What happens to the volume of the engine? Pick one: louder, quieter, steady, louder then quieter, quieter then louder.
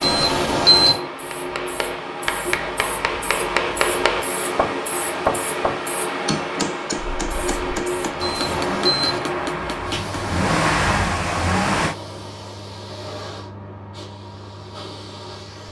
louder.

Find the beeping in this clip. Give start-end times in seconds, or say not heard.
0.0-0.9, 8.2-9.2.